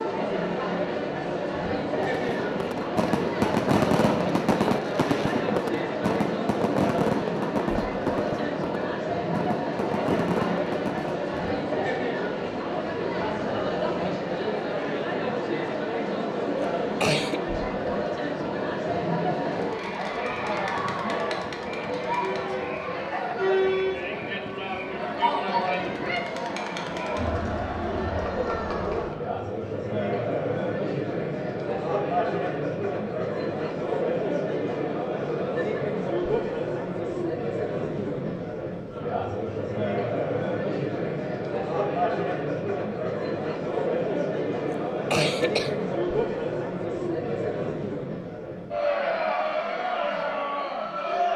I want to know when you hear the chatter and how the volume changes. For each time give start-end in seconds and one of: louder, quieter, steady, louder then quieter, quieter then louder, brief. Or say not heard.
0.0-51.3 steady.